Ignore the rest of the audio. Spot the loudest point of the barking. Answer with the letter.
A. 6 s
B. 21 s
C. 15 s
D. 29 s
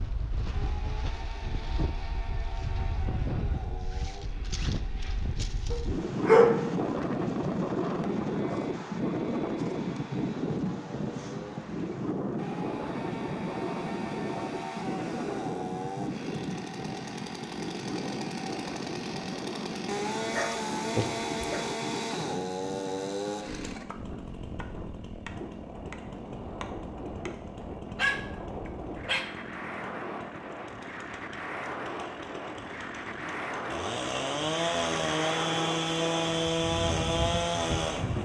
A.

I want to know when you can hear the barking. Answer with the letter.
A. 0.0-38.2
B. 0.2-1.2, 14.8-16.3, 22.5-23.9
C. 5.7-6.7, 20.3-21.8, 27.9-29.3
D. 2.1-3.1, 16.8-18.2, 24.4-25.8
C.